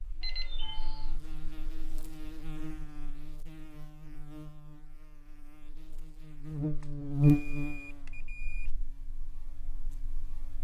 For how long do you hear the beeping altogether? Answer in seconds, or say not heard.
3 s.